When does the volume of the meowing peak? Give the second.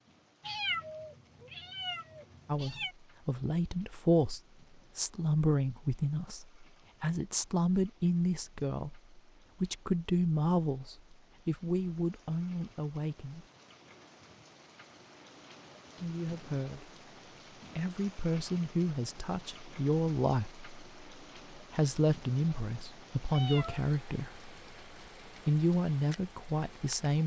1 s.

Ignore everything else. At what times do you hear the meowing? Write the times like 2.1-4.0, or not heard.
0.4-3.0, 23.2-23.9.